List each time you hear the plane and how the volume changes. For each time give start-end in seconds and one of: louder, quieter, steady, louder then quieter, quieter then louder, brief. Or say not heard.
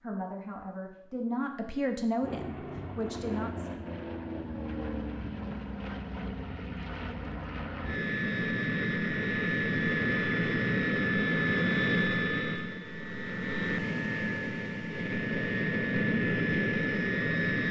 2.2-17.6 louder.